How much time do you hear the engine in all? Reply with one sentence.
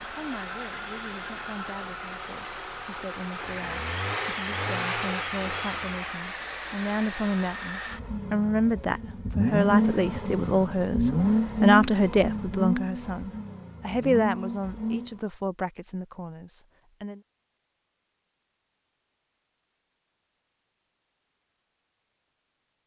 The engine can be heard for 15 seconds in total.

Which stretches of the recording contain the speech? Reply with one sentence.
You can hear the speech from 0.0 to 17.2 s.